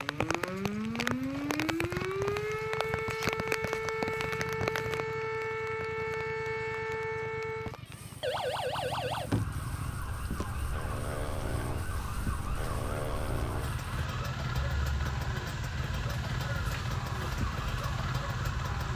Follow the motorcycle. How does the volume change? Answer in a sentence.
The loudness of the motorcycle goes up.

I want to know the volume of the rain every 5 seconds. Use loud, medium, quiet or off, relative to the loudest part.
loud, quiet, quiet, quiet.